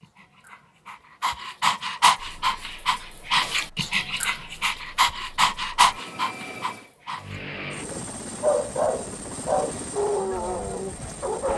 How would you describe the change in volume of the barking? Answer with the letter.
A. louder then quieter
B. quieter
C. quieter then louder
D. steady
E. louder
D.